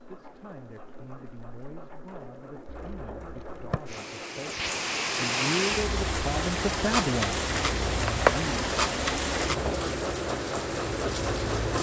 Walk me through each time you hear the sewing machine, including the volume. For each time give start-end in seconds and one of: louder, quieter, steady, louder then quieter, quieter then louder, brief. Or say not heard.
0.0-11.7 louder.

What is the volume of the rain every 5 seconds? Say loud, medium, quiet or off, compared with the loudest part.
medium, loud, medium.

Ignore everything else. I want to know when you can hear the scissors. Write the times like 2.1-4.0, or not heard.
2.6-3.8, 7.5-8.8.